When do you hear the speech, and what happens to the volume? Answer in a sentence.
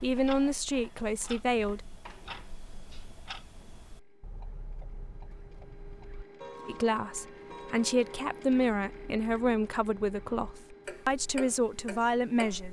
You can hear the speech briefly from 0.0 to 1.9 s; and from 6.7 to 12.6 s, at a steady volume.